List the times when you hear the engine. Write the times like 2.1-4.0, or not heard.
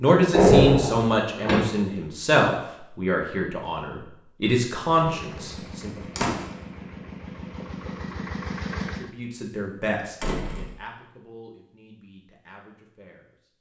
5.0-9.1.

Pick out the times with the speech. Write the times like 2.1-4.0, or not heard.
0.0-6.0, 8.9-13.3.